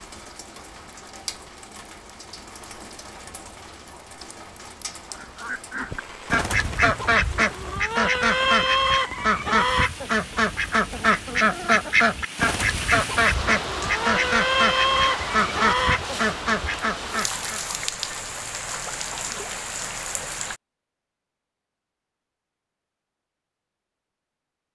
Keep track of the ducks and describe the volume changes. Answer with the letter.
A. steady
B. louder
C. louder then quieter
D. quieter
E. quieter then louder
A.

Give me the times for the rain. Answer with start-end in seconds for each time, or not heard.
0.0-20.6.